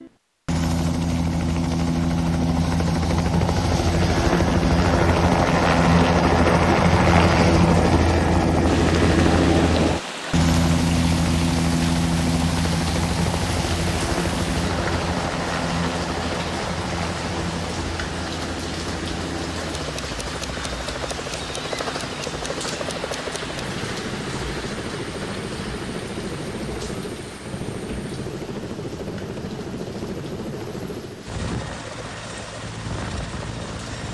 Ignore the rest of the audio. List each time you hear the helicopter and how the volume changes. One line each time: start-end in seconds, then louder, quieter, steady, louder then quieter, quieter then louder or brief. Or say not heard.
0.0-34.1 quieter.